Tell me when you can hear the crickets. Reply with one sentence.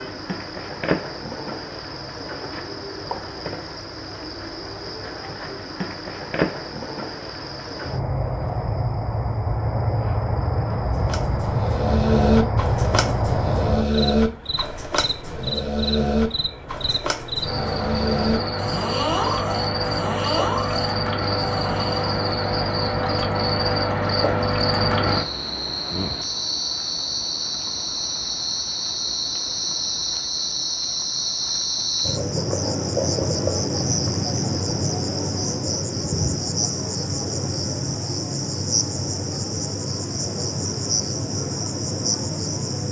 The crickets can be heard from 0.0 to 42.8 s.